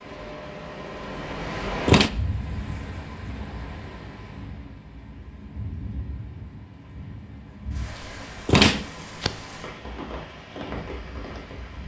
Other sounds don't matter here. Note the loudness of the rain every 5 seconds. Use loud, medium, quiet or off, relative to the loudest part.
loud, medium, loud.